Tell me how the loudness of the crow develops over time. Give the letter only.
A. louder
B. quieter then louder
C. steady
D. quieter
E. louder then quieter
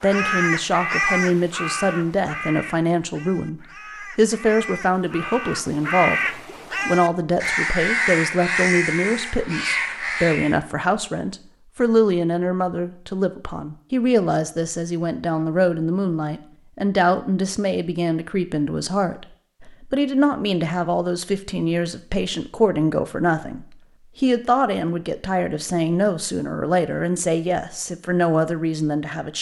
B.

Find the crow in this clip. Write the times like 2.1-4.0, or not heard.
0.0-10.6.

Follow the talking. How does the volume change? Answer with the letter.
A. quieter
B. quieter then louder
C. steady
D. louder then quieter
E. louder
C.